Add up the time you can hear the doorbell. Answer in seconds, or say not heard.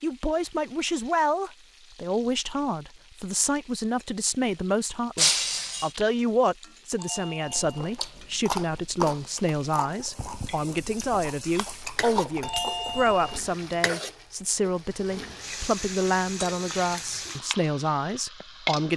2 s.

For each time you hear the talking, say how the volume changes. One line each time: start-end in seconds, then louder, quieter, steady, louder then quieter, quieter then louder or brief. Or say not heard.
0.0-18.9 steady.